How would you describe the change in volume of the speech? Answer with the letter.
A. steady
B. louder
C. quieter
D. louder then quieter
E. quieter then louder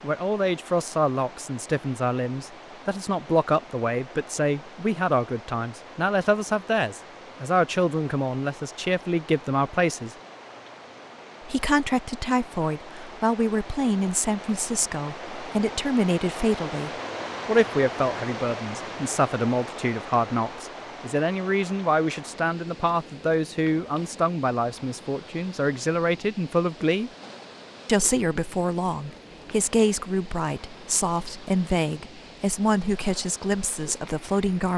A.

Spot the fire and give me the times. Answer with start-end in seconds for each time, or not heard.
not heard.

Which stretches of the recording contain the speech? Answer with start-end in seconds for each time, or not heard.
0.0-10.1, 11.4-27.1, 27.9-34.7.